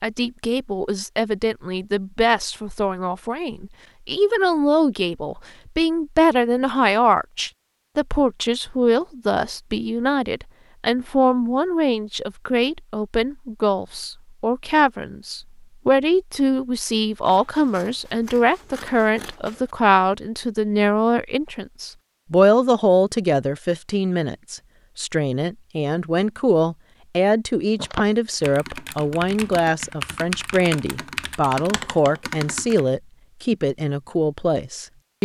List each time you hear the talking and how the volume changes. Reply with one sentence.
You can hear the talking from 0.0 to 35.2 s, at a steady volume.